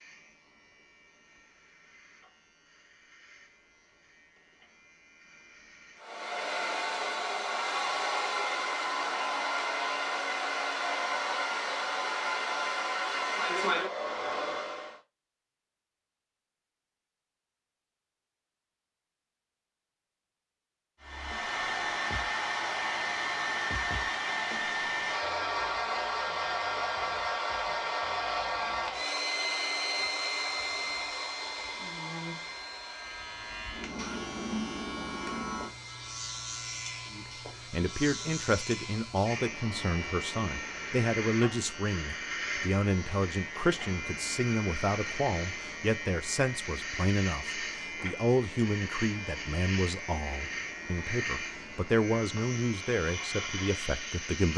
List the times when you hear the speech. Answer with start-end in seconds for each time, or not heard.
37.1-54.5.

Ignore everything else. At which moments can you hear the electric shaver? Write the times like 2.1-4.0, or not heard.
0.0-6.0, 30.2-54.5.